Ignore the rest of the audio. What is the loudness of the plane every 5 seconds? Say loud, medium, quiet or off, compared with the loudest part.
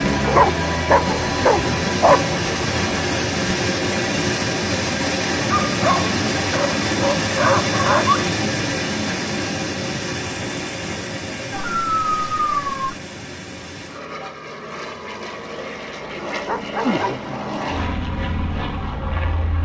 loud, loud, medium, medium.